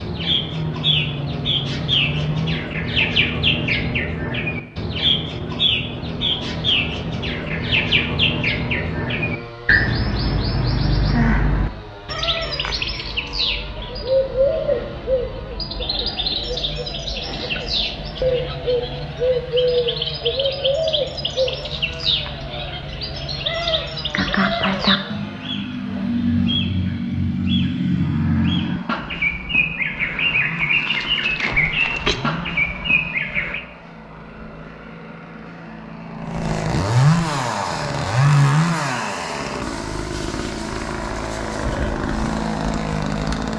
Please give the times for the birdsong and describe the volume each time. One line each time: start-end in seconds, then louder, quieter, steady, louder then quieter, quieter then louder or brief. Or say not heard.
0.0-33.6 steady.